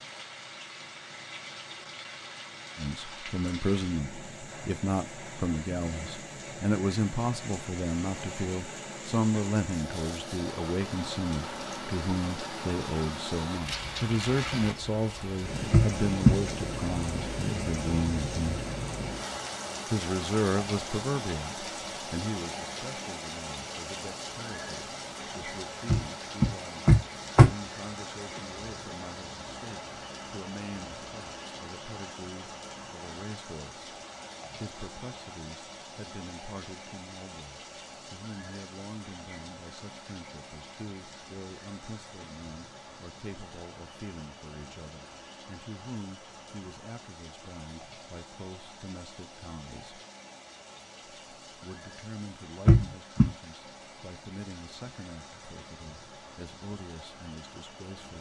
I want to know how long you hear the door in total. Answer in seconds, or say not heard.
3 s.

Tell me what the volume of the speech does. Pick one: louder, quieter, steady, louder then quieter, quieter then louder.
quieter.